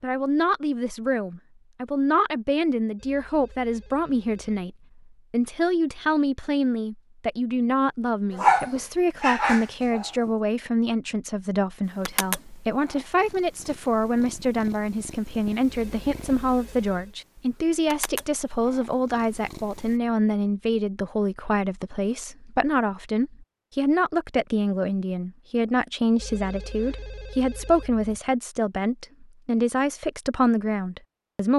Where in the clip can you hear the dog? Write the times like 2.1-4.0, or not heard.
8.3-10.3.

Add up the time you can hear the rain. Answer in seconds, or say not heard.
not heard.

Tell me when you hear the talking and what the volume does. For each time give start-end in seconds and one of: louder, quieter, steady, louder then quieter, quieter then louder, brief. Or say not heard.
0.0-31.5 steady.